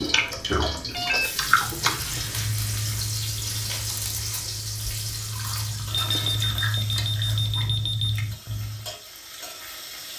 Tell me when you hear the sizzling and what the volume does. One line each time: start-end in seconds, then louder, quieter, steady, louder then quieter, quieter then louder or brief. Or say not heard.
0.0-10.1 quieter.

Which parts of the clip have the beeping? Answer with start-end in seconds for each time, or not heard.
0.2-2.5, 5.9-8.2.